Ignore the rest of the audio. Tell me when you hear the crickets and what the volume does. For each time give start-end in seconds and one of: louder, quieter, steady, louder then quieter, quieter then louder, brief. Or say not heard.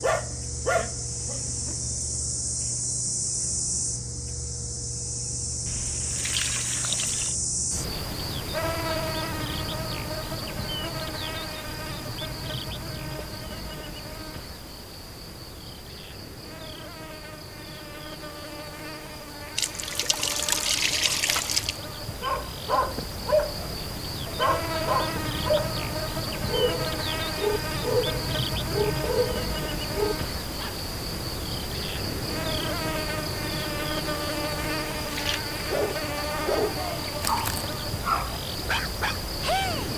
0.0-39.9 quieter then louder.